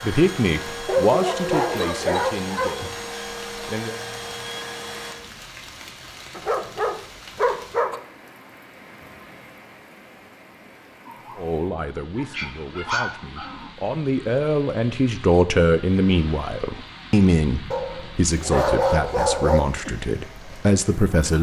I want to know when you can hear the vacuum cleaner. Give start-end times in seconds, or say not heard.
0.0-5.2.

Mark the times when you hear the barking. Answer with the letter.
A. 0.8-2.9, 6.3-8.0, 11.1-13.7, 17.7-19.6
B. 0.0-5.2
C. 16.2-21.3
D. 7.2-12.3
A.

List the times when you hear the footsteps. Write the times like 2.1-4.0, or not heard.
not heard.